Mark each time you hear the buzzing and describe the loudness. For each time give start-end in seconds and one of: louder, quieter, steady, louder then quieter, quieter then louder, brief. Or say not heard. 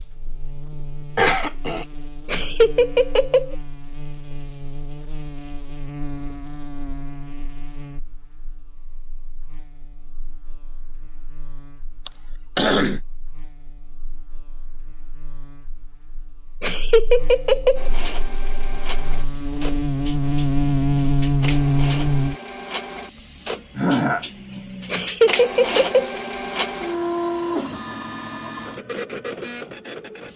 0.0-22.4 quieter then louder.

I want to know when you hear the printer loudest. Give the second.
27 s.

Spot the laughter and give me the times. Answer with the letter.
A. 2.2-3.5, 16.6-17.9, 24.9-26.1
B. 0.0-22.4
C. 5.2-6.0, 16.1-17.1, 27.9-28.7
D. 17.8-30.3
A.